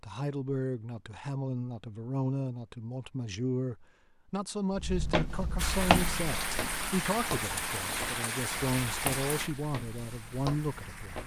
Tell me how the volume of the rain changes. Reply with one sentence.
The volume of the rain goes down.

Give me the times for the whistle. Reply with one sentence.
The whistle can't be heard in this clip.